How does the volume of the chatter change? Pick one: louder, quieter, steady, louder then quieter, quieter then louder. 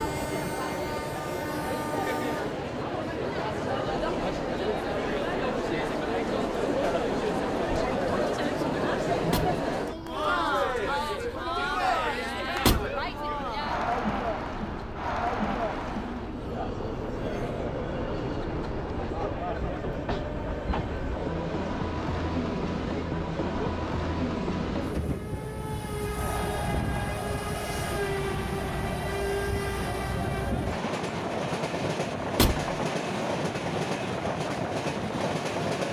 quieter.